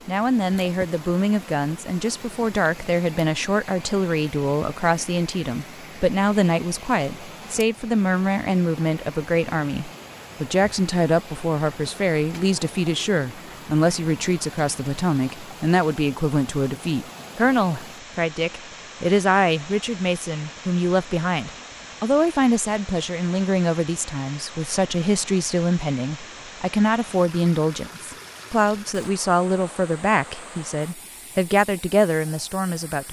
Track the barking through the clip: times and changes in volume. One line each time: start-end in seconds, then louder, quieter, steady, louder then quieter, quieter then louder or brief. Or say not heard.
not heard.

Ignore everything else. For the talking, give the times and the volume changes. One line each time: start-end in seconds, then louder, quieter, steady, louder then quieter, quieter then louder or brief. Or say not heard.
0.1-33.0 steady.